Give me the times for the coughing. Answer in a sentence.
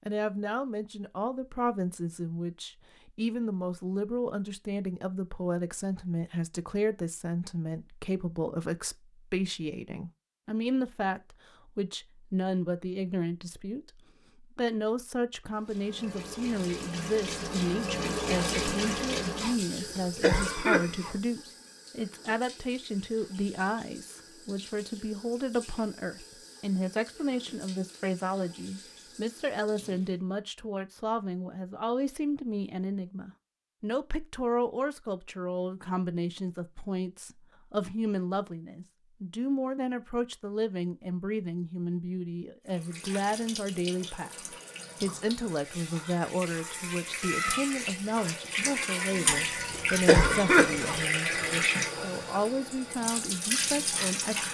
You can hear the coughing from 19.4 to 21.1 s and from 49.2 to 51.0 s.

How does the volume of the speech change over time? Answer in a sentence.
The volume of the speech stays about the same.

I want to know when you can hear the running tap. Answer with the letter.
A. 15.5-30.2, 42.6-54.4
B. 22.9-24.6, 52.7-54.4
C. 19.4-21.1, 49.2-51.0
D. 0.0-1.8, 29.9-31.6
A.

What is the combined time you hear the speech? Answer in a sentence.
You can hear the speech for 54 seconds altogether.